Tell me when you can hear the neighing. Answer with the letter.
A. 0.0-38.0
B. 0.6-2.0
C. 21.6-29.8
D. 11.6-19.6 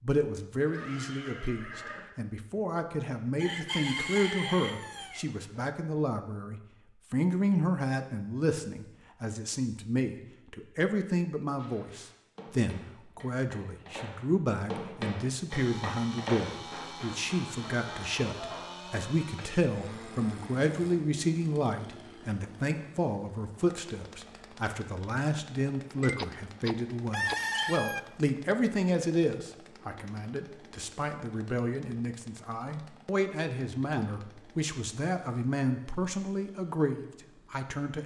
B.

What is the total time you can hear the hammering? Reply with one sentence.
The hammering can be heard for 8 seconds in total.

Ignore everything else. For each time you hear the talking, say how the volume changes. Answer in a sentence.
You can hear the talking from 0.0 to 38.0 s, at a steady volume.